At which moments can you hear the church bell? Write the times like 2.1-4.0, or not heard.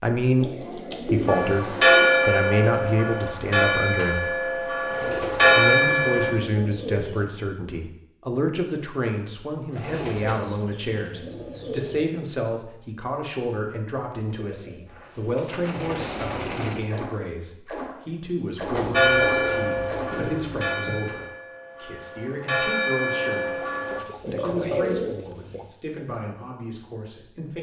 1.2-6.3, 18.9-24.0.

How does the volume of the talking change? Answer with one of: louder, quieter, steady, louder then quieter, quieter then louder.
quieter.